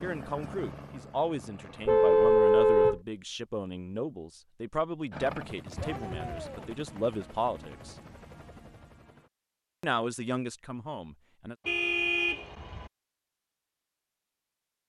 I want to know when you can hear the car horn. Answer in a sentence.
You can hear the car horn from 1.9 to 3.0 s, from 5.8 to 6.5 s and from 11.7 to 12.9 s.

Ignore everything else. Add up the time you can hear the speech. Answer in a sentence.
You can hear the speech for 10 seconds altogether.